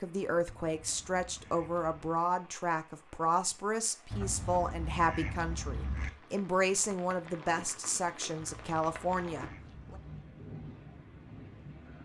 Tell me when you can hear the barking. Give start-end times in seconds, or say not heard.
not heard.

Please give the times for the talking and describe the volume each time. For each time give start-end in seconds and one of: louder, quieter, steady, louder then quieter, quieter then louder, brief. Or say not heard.
0.0-9.9 steady.